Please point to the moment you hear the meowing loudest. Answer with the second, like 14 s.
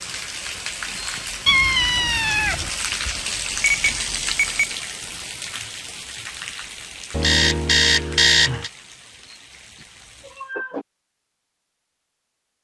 2 s.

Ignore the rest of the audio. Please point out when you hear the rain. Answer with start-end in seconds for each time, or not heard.
0.0-10.6.